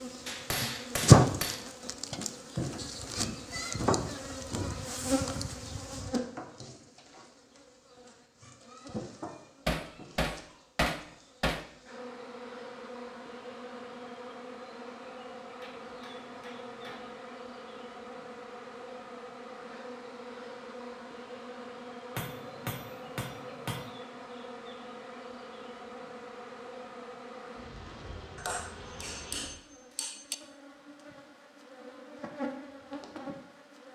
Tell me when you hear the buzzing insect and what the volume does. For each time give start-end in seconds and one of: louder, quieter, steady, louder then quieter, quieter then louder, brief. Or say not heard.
0.0-33.9 quieter.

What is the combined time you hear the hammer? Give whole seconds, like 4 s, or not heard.
9 s.